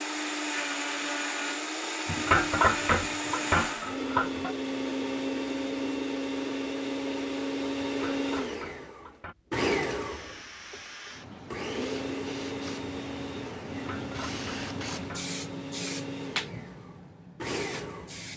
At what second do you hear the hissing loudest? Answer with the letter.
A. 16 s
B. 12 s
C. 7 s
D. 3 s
A.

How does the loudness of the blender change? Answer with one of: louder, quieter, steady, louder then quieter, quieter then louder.
quieter.